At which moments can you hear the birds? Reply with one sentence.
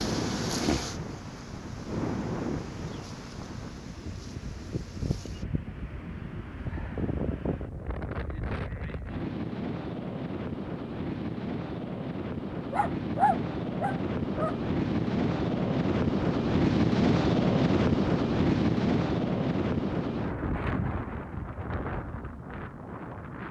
The birds can't be heard in this clip.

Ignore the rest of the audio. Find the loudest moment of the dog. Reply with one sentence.
The volume of the dog peaks at 13 seconds.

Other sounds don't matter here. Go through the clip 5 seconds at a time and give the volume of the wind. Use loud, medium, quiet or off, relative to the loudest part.
medium, medium, medium, loud, medium.